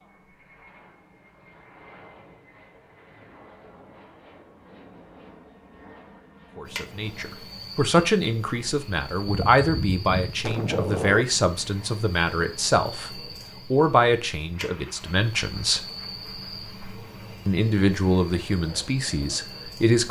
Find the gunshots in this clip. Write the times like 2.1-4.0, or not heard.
9.2-11.2.